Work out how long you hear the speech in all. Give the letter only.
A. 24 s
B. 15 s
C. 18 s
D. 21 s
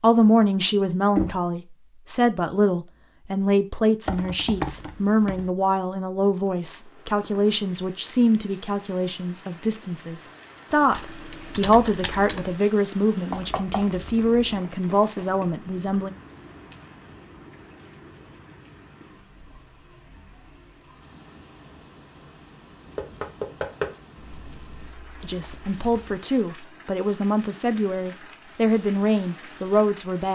D.